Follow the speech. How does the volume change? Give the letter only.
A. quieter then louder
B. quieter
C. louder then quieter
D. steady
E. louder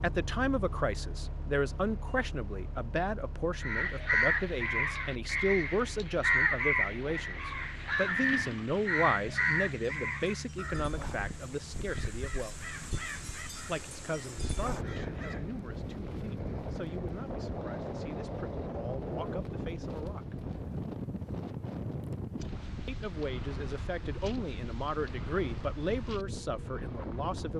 A.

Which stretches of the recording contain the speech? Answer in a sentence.
The speech can be heard from 0.0 to 12.6 s, from 13.7 to 20.4 s and from 22.9 to 27.5 s.